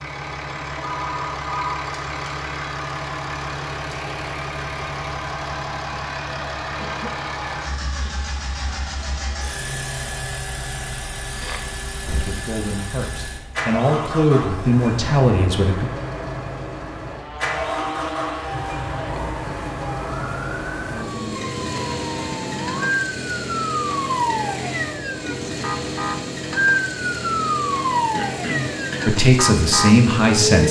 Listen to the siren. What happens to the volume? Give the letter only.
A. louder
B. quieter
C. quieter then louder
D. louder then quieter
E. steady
A.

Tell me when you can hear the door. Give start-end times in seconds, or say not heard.
not heard.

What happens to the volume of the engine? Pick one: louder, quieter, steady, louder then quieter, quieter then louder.
steady.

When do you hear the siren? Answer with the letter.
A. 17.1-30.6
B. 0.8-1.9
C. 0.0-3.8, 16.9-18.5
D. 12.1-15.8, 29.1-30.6
A.